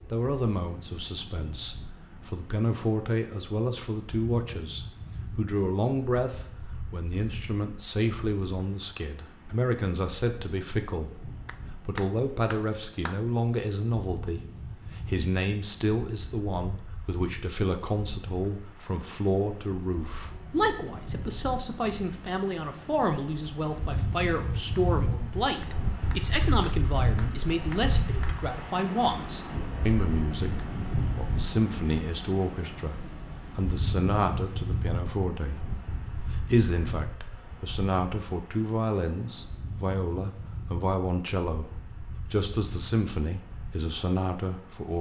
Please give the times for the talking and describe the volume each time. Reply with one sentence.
The talking can be heard from 0.0 to 44.9 s, at a steady volume.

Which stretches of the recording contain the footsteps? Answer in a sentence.
The footsteps can't be heard in this clip.